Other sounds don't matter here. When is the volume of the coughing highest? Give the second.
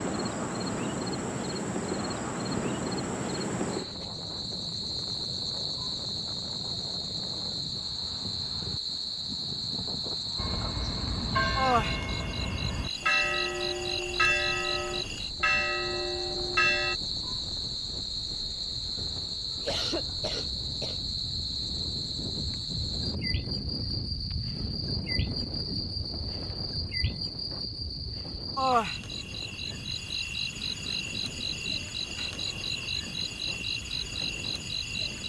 20 s.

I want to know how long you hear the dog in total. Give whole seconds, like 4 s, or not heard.
not heard.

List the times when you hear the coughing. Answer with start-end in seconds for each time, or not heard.
19.6-21.1.